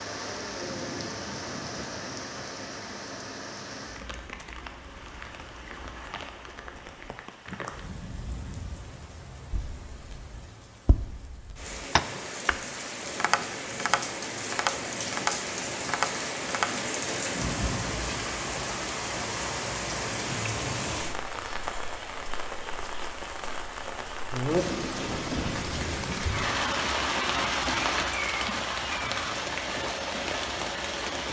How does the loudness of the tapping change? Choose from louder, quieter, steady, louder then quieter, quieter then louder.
louder.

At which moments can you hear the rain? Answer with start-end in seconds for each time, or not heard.
0.0-31.2.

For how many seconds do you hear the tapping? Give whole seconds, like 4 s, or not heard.
7 s.